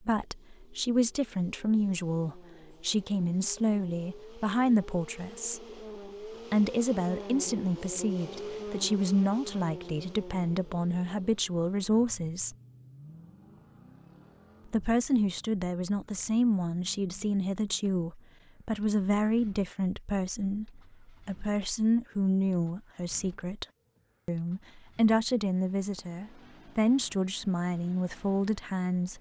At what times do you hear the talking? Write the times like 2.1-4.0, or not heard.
0.1-5.6, 6.5-12.6, 14.7-23.6, 24.2-29.1.